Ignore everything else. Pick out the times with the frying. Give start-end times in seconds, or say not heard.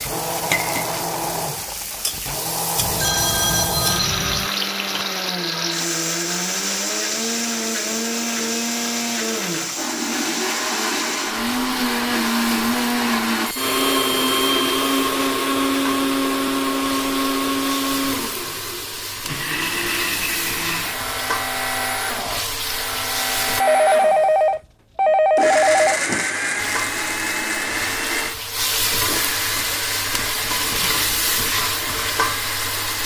0.0-23.6, 26.6-33.0.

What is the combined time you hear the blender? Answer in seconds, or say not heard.
33 s.